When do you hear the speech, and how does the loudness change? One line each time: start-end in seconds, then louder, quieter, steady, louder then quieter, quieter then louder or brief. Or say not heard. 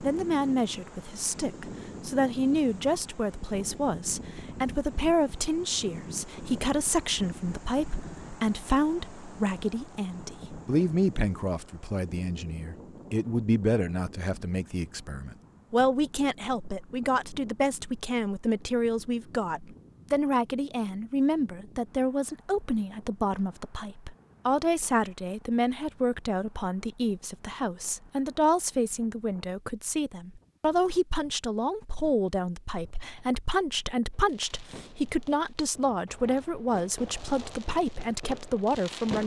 0.0-39.2 steady.